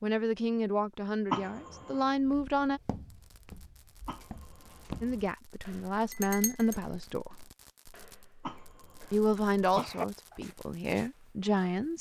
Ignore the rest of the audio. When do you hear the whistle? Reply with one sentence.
The whistle can't be heard in this clip.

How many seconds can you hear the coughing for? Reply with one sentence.
You can hear the coughing for 4 seconds altogether.